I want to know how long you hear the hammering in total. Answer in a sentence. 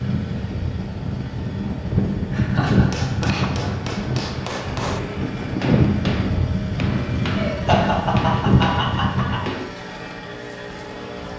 You can hear the hammering for 7 seconds altogether.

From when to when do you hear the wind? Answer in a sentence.
The wind can be heard from 0.0 to 9.6 s.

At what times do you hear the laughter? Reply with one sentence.
You can hear the laughter from 2.3 to 3.7 s and from 7.3 to 9.4 s.